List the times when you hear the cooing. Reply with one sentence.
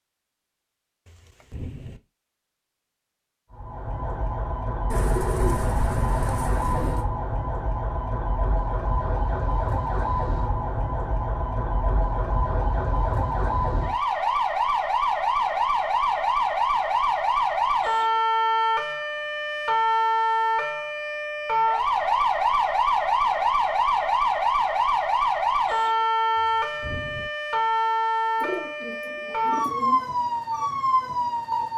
You can hear the cooing from 4.9 to 7.0 s and from 28.4 to 30.1 s.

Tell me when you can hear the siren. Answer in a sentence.
You can hear the siren from 3.5 to 31.7 s.